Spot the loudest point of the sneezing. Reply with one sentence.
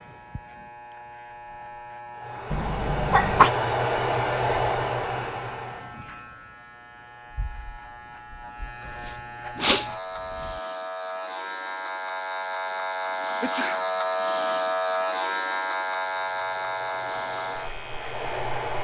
The volume of the sneezing peaks at 3 seconds.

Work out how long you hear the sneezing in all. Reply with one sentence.
The sneezing can be heard for 3 seconds in total.